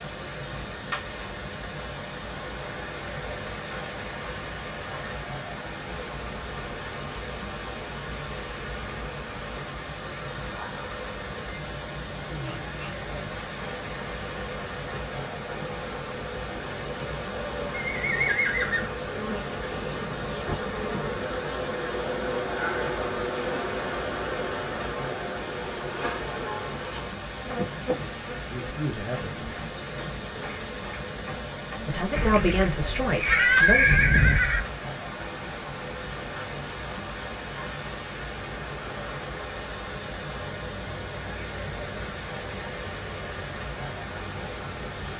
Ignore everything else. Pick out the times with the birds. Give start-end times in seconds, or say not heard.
not heard.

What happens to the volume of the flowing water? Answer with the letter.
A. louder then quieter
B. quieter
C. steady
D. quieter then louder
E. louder
C.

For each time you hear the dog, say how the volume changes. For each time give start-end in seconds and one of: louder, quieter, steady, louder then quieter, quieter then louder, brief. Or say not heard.
not heard.